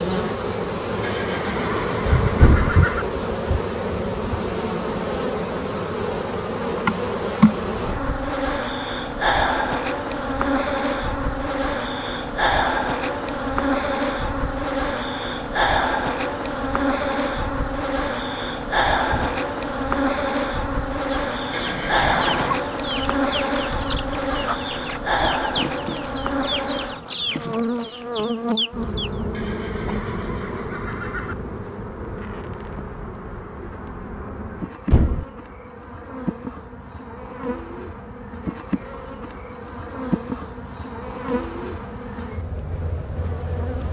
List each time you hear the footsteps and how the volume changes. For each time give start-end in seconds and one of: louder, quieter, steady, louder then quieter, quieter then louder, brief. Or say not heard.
not heard.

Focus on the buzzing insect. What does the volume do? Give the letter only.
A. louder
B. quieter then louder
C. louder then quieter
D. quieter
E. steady
D.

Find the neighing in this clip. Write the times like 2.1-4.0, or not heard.
1.0-3.0, 21.5-22.6, 29.3-31.4.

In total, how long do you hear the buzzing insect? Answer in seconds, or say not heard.
44 s.